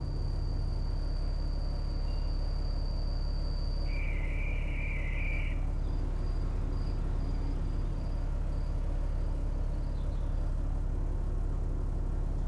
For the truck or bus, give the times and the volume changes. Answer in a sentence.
The truck or bus can be heard from 0.0 to 12.4 s, at a steady volume.